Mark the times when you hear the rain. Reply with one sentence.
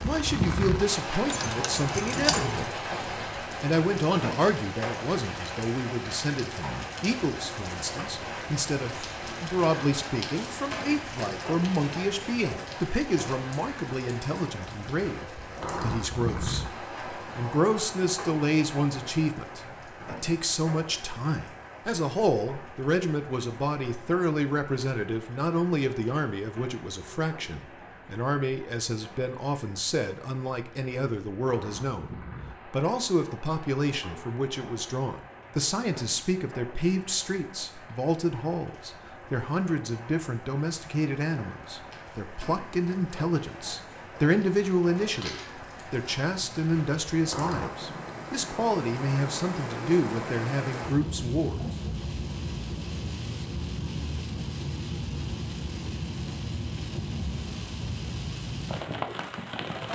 You can hear the rain from 0.0 to 59.9 s.